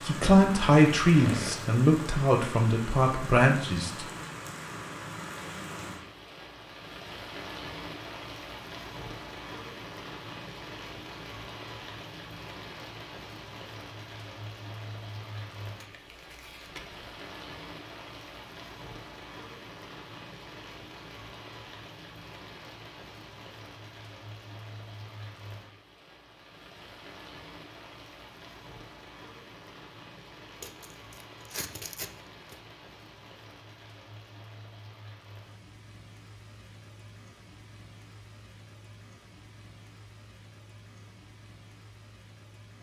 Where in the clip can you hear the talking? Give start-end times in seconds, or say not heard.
0.0-4.0.